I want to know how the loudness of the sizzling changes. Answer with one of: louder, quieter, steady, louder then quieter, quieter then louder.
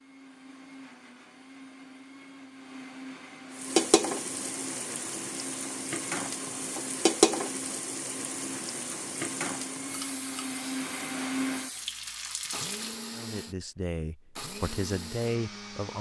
louder then quieter.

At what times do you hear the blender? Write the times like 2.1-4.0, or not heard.
0.0-15.9.